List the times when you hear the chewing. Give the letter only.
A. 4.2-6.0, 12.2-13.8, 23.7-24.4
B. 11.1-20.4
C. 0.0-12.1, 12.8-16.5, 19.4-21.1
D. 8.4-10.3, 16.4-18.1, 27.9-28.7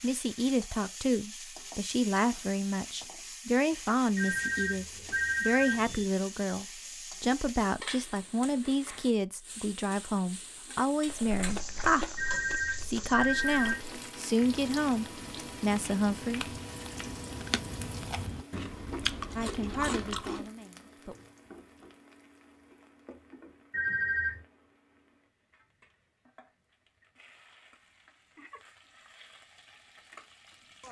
B.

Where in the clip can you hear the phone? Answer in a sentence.
You can hear the phone from 4.2 to 6.0 s, from 12.2 to 13.8 s and from 23.7 to 24.4 s.